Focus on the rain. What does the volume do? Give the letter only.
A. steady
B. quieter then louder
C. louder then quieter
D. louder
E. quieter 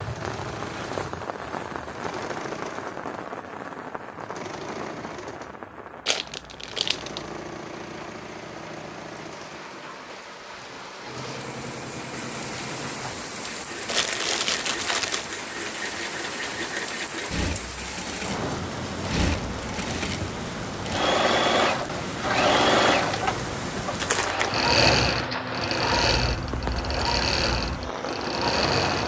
B.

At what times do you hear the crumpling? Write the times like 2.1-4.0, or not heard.
6.0-7.3, 13.8-15.3, 23.9-24.7.